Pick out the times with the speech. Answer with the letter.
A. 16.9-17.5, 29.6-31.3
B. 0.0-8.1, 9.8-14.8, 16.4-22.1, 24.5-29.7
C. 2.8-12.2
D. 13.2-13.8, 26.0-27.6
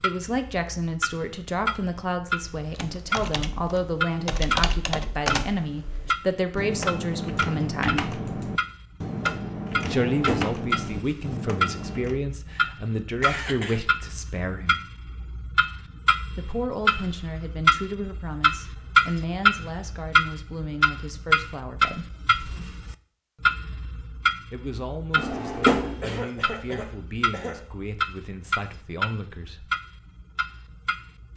B.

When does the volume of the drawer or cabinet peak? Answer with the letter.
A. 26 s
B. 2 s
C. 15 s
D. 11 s
A.